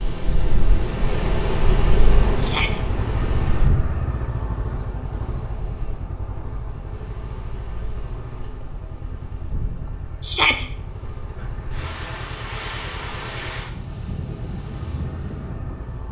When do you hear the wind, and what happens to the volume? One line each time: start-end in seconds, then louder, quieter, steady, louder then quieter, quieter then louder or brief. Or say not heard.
0.0-16.0 quieter then louder.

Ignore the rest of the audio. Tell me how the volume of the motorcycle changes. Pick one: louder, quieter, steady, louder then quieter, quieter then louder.
quieter.